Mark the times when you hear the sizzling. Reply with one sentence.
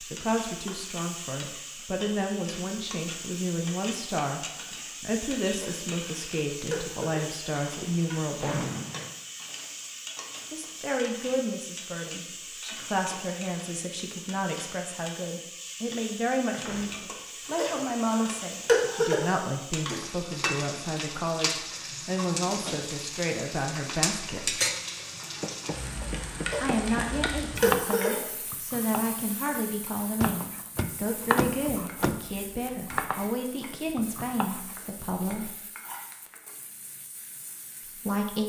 The sizzling can be heard from 0.0 to 38.4 s.